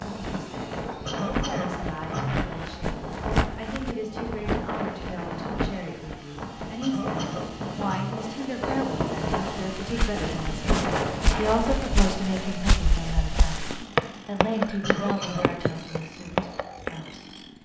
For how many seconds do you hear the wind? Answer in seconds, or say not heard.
12 s.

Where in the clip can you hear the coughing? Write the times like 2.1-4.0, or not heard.
1.1-2.5, 6.8-8.2, 14.8-15.5.